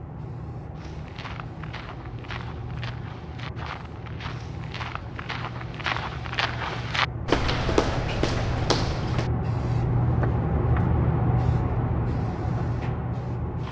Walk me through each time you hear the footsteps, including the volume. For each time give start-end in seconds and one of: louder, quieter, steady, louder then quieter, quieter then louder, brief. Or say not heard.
0.8-10.9 louder then quieter.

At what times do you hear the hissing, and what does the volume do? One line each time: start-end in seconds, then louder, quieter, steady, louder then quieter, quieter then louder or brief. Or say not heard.
0.0-13.6 louder.